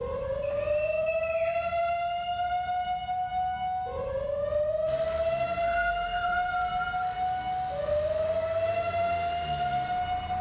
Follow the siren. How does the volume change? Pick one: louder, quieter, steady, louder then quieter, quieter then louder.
steady.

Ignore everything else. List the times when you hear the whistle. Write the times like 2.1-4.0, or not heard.
0.4-2.4, 5.2-7.2.